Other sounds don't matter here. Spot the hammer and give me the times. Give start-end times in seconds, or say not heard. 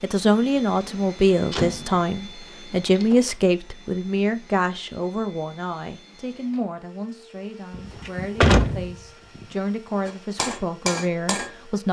10.1-11.6.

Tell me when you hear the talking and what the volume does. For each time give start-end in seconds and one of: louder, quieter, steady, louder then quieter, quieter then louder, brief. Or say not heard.
0.0-11.8 quieter then louder.